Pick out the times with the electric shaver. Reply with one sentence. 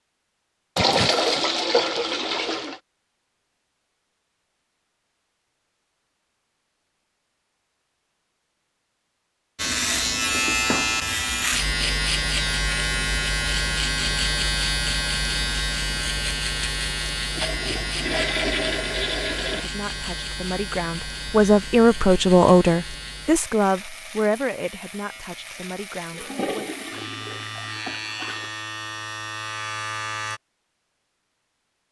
You can hear the electric shaver from 9.6 to 30.4 s.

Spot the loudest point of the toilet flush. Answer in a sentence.
The loudest moment of the toilet flush is at 1 second.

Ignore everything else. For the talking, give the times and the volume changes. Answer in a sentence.
The talking can be heard from 19.6 to 26.7 s, getting louder then quieter.